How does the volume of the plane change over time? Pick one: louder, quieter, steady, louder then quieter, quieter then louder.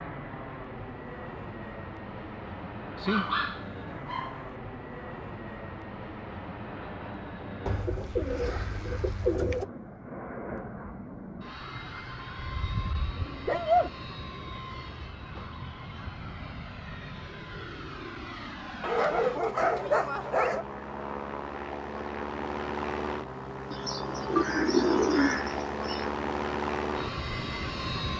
louder.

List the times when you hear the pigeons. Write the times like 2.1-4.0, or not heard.
7.7-9.7, 23.7-26.1.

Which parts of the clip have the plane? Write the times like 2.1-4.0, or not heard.
0.0-28.1.